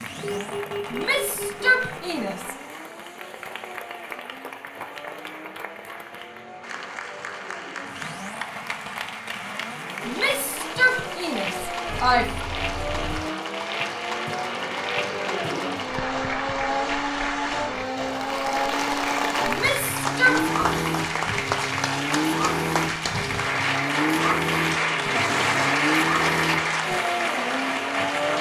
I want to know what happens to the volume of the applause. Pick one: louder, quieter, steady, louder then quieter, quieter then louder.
louder.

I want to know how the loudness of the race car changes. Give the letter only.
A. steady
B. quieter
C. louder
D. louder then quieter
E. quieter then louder
C.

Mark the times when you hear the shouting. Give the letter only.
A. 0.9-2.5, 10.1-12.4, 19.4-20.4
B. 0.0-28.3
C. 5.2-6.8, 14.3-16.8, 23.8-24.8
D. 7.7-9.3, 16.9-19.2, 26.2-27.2
A.